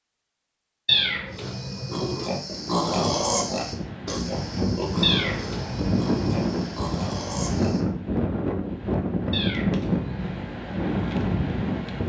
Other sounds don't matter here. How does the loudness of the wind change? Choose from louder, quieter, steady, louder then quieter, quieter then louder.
louder.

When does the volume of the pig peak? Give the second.
3 s.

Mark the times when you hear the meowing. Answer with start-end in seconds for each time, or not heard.
0.8-2.2, 5.0-6.4, 9.3-10.2.